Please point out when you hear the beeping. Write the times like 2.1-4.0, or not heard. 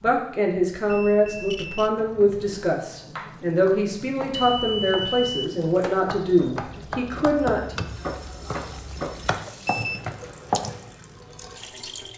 0.9-1.9, 4.3-5.5, 9.4-10.2.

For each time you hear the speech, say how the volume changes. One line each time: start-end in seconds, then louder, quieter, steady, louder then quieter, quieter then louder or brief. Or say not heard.
0.0-7.8 steady.